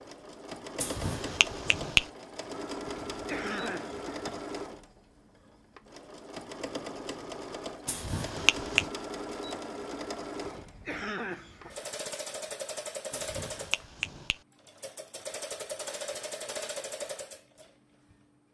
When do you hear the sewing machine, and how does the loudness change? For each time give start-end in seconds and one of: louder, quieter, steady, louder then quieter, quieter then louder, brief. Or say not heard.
0.0-18.2 steady.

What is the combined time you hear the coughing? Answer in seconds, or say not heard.
3 s.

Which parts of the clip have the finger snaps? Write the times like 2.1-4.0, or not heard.
0.8-2.0, 7.8-8.9, 13.1-14.4.